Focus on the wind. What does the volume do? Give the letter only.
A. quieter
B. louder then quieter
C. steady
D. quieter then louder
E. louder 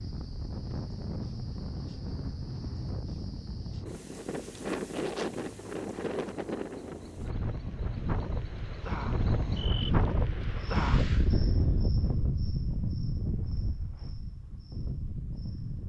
B.